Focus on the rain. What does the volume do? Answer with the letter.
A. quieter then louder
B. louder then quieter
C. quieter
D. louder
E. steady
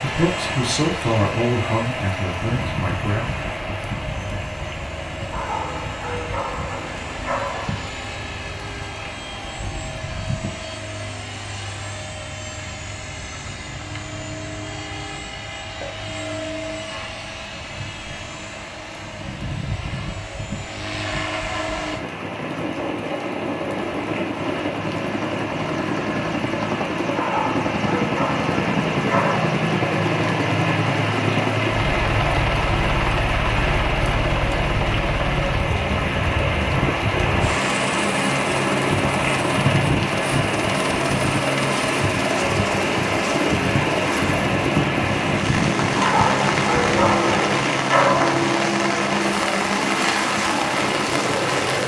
A.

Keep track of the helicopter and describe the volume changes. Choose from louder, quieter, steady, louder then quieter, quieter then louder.
louder.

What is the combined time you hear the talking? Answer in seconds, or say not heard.
3 s.